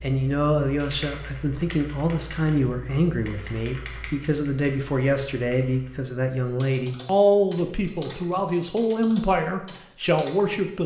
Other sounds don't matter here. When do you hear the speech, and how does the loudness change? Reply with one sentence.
You can hear the speech from 0.0 to 10.8 s, at a steady volume.